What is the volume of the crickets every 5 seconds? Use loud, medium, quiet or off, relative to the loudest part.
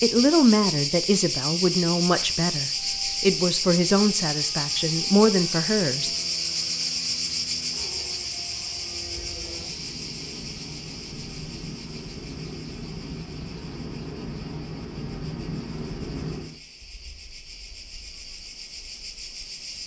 loud, loud, quiet, quiet.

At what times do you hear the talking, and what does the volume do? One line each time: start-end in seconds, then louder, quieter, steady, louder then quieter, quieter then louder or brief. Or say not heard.
0.0-6.1 steady.